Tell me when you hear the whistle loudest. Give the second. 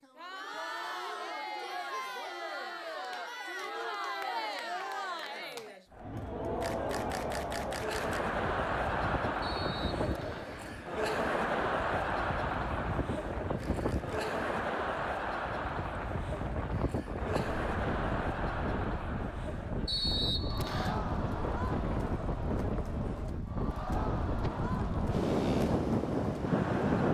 20 s.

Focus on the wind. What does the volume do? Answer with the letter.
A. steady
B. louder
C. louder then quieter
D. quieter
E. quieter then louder
B.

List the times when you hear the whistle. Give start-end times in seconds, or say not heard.
9.4-10.6, 19.9-21.0.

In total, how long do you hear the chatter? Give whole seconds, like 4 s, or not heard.
27 s.